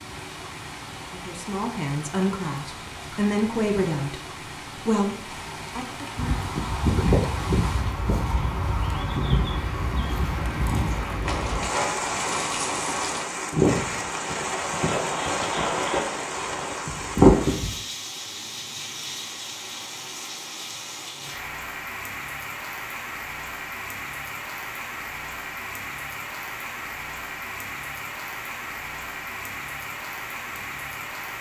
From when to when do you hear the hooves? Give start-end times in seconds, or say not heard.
6.2-17.8.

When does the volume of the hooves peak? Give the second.
17 s.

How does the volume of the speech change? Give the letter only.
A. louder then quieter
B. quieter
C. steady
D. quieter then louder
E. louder
B.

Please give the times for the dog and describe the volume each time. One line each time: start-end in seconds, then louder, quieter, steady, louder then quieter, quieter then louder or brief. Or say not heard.
not heard.